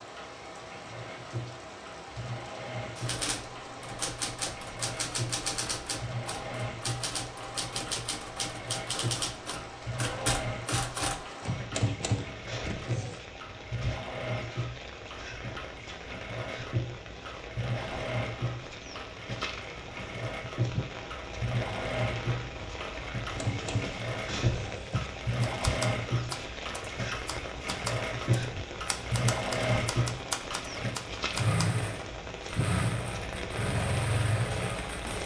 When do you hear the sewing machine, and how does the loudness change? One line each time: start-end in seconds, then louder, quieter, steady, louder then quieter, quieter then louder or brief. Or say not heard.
0.0-35.2 louder.